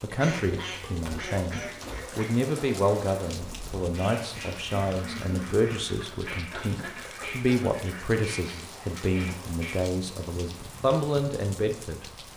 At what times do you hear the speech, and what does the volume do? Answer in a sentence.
You can hear the speech from 0.0 to 12.1 s, at a steady volume.